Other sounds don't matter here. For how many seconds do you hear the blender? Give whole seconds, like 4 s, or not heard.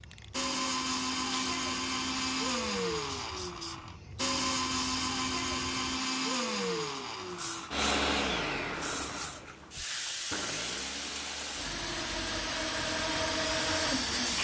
14 s.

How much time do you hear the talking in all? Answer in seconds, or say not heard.
not heard.